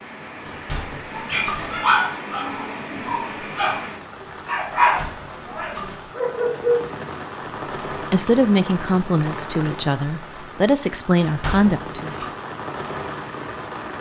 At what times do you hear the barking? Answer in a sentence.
You can hear the barking from 0.8 to 6.8 s.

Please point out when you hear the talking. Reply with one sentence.
You can hear the talking from 8.1 to 12.1 s.